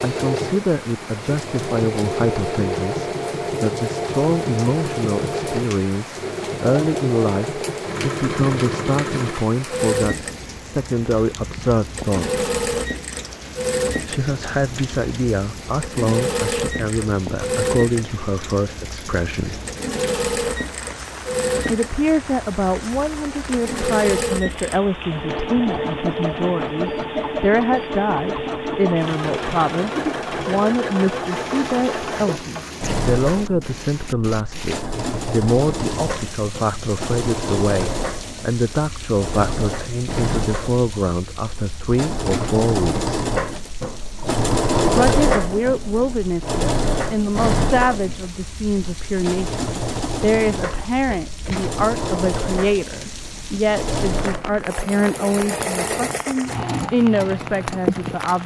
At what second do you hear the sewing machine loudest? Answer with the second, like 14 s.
45 s.